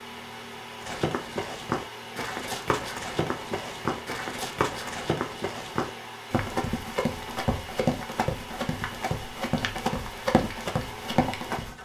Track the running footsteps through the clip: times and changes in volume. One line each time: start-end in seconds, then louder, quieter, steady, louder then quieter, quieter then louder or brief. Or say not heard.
0.8-11.8 steady.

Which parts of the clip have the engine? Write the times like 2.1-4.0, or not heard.
0.0-11.8.